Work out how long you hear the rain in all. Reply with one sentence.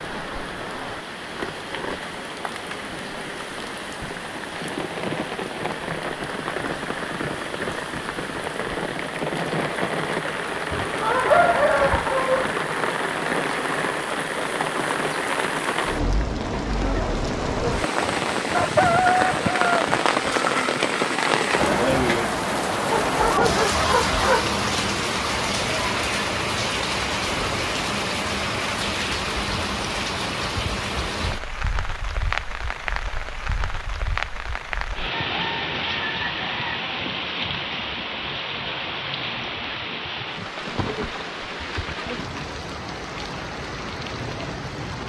You can hear the rain for 45 seconds altogether.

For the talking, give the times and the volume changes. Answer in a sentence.
You can't hear the talking here.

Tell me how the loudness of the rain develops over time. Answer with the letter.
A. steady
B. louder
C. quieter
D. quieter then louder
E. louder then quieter
E.